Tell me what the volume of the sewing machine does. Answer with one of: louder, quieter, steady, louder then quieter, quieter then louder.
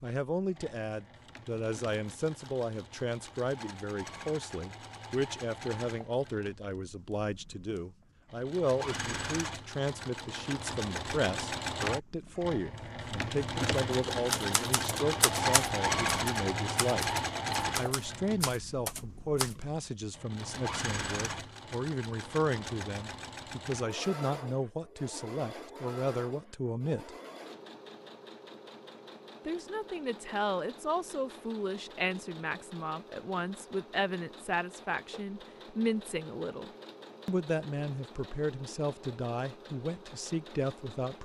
louder then quieter.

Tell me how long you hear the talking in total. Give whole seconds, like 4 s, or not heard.
38 s.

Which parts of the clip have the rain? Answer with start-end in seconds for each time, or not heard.
not heard.